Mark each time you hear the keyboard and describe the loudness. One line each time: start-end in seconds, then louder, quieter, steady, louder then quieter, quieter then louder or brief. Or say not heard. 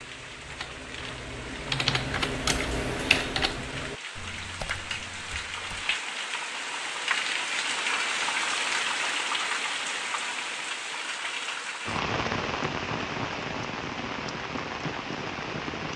0.0-6.0 louder then quieter.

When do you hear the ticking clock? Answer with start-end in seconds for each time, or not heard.
not heard.